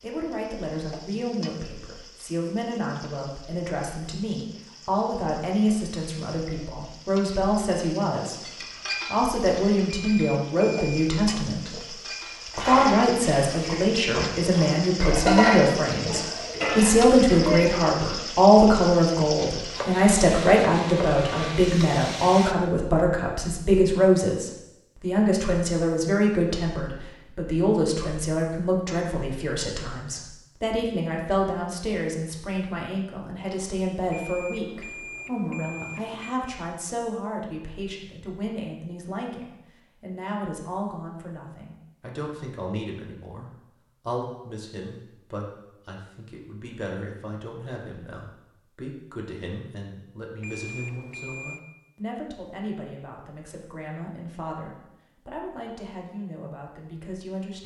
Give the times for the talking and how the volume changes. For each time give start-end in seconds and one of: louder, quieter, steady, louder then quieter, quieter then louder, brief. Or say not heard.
0.0-57.6 louder then quieter.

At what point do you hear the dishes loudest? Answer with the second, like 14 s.
15 s.